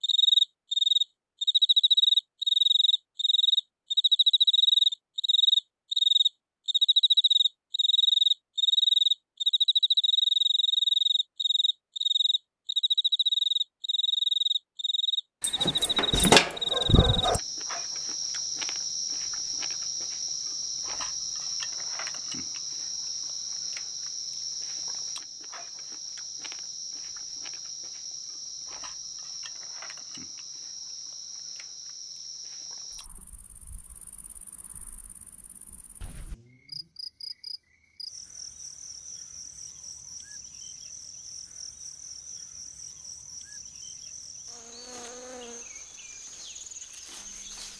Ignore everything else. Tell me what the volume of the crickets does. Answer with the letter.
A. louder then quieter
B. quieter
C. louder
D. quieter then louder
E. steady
B.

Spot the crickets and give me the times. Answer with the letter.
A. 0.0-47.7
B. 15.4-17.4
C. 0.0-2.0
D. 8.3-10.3
A.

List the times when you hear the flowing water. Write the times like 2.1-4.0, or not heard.
not heard.